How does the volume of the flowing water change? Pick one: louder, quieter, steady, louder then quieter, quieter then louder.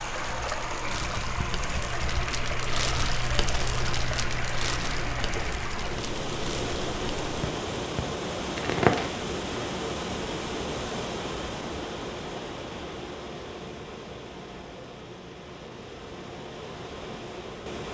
quieter.